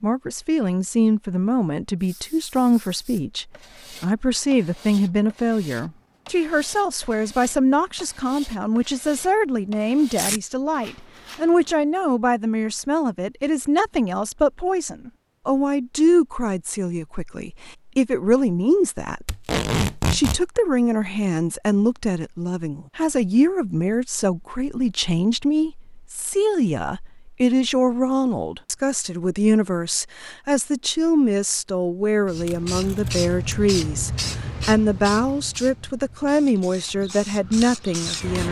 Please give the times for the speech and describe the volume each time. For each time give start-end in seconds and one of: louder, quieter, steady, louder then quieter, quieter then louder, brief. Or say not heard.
0.0-38.4 steady.